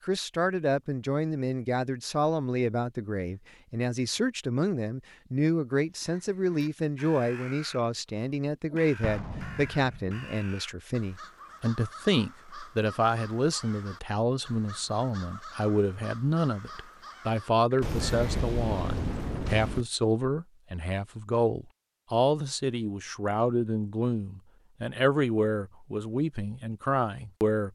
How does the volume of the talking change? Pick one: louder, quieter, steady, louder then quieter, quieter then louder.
steady.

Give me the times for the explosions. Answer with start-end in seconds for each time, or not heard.
9.0-10.2, 17.8-19.9.